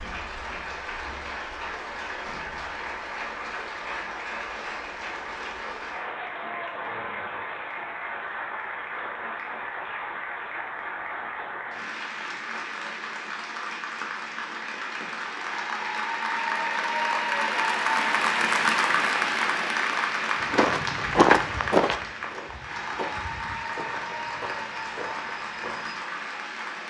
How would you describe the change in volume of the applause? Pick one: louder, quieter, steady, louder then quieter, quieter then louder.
louder then quieter.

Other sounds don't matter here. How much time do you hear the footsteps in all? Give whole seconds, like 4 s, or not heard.
6 s.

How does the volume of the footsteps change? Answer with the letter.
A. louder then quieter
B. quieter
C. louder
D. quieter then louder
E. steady
B.